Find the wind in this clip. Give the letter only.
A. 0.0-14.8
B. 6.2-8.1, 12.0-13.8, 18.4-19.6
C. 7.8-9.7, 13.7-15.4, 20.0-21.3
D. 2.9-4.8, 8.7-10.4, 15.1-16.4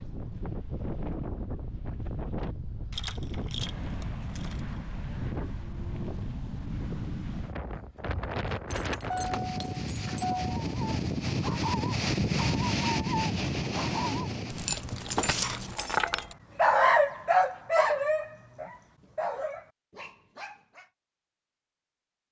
A.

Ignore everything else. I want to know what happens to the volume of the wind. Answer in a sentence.
The loudness of the wind goes up.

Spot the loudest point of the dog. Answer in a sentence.
The loudest moment of the dog is at 17 seconds.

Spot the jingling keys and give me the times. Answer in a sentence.
The jingling keys can be heard from 2.9 to 4.8 s, from 8.7 to 10.4 s and from 15.1 to 16.4 s.